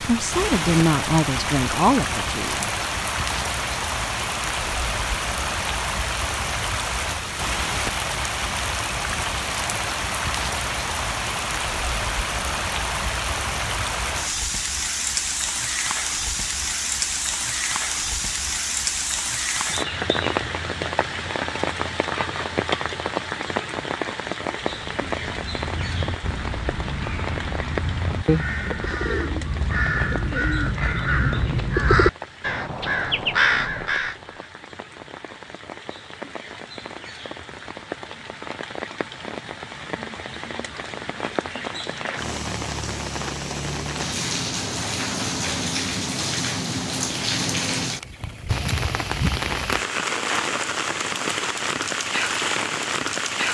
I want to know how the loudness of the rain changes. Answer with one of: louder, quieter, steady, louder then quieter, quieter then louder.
quieter then louder.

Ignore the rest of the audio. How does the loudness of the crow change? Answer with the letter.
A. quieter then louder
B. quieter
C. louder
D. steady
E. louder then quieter
C.